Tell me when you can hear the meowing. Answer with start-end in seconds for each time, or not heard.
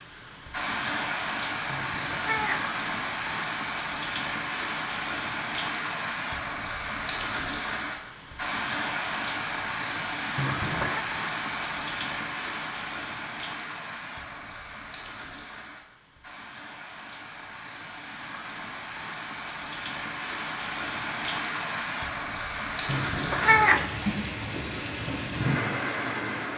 1.6-2.7, 10.3-11.1, 22.9-23.9.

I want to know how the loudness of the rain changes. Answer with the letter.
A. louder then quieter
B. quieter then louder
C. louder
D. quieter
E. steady
B.